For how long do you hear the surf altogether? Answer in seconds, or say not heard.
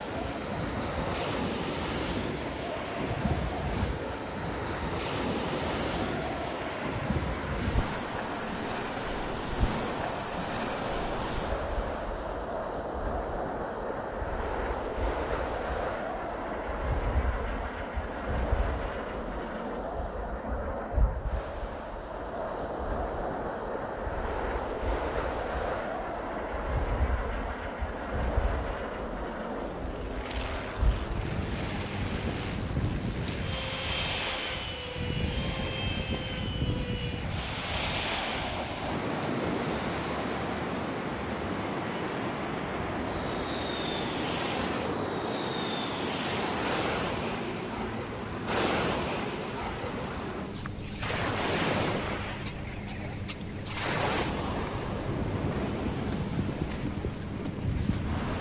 58 s.